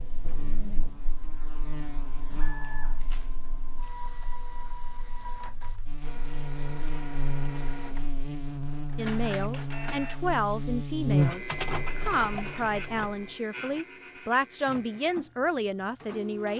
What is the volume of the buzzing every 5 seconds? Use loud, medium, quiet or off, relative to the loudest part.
quiet, medium, loud, off.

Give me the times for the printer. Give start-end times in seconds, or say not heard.
0.0-16.5.